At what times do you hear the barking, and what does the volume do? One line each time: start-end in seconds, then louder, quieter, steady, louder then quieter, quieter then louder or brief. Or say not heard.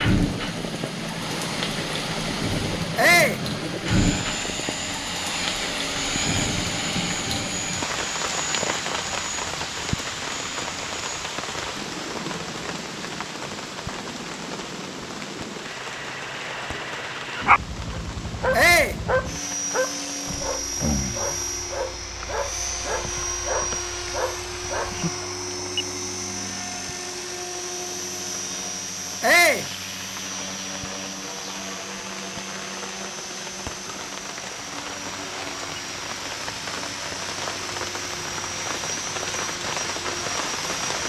17.4-25.1 quieter.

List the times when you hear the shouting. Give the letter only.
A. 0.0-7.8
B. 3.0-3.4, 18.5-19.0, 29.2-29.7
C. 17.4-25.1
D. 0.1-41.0
B.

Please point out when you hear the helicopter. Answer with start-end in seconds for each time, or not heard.
0.1-41.0.